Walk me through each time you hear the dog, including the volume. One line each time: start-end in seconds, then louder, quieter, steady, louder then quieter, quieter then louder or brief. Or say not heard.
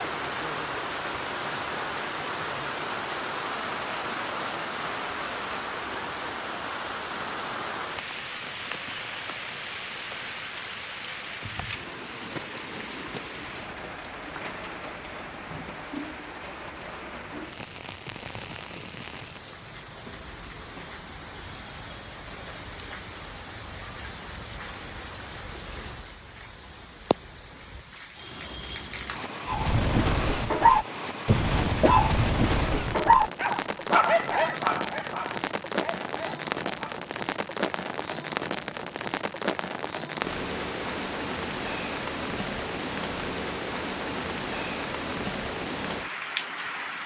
29.4-37.0 quieter.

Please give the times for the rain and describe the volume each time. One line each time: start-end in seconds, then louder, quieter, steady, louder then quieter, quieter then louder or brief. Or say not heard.
0.0-47.0 quieter then louder.